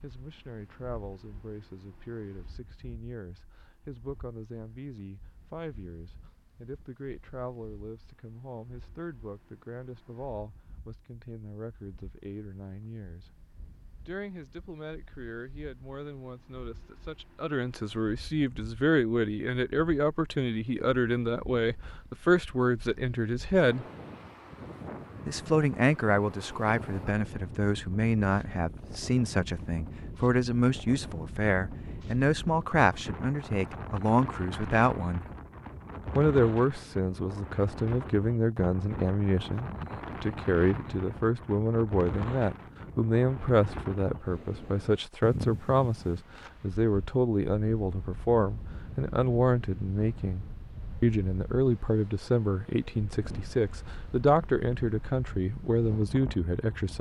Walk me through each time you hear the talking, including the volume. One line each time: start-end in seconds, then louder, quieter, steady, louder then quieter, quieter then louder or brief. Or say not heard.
0.0-13.3 steady
14.1-23.9 louder
25.2-35.2 steady
36.1-56.9 steady.